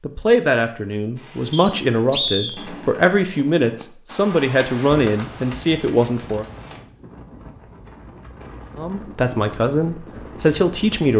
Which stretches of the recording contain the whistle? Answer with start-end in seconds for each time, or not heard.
1.5-2.6.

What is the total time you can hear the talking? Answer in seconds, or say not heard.
9 s.